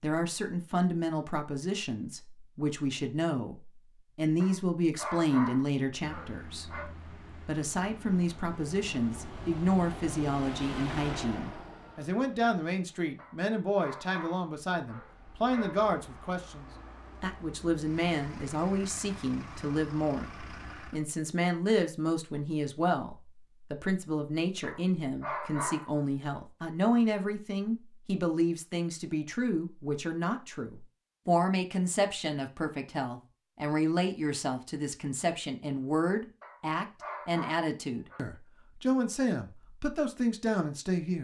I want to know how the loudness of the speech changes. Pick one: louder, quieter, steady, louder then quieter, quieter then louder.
steady.